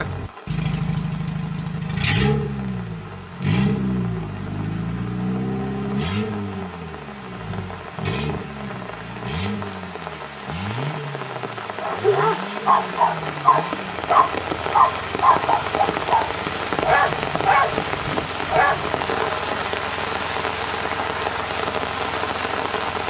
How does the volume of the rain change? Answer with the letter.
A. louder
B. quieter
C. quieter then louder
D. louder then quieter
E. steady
A.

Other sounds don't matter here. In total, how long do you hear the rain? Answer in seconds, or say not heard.
23 s.